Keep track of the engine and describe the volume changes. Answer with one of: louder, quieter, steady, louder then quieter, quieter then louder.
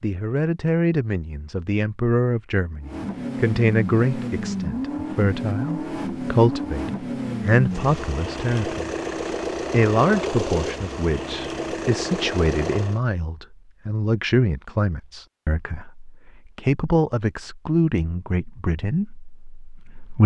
steady.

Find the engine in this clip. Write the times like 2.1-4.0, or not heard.
2.8-13.0.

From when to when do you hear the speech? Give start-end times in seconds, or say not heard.
0.0-8.9, 9.7-20.2.